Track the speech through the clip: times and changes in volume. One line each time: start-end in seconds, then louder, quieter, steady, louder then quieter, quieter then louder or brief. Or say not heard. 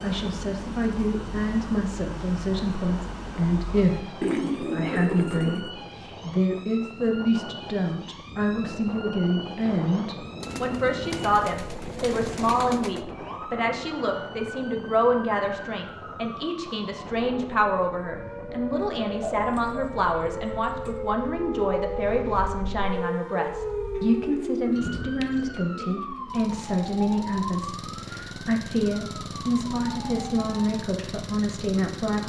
0.0-32.2 steady.